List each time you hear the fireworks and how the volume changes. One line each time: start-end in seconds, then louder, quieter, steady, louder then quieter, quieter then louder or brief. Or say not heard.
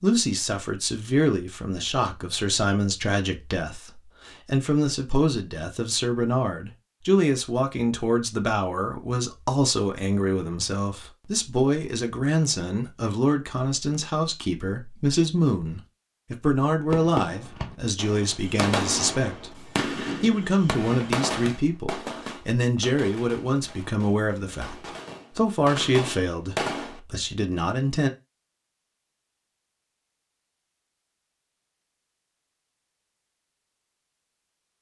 16.9-27.0 quieter then louder.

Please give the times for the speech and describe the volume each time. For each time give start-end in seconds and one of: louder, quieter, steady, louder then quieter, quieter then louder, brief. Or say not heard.
0.0-28.1 steady.